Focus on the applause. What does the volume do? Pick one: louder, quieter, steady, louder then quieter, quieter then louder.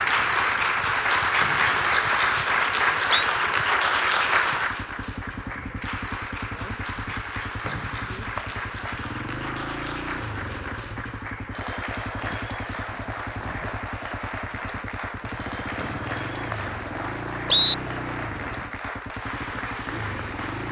quieter.